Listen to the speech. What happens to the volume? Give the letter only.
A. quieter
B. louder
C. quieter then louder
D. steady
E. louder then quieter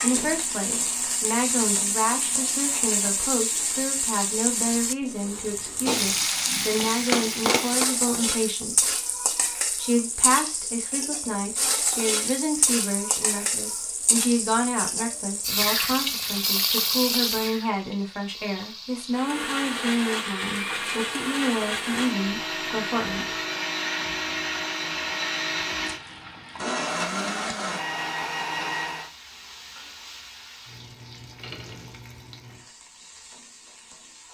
D.